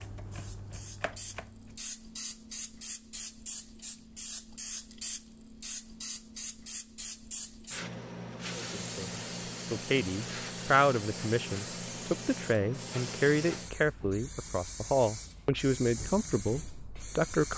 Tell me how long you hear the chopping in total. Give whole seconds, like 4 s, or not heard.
2 s.